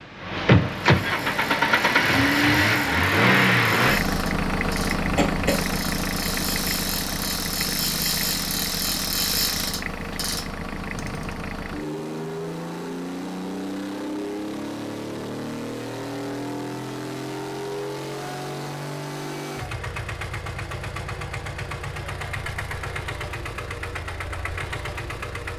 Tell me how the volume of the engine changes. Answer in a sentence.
The loudness of the engine goes down.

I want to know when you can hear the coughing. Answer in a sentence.
You can hear the coughing from 5.0 to 5.7 s.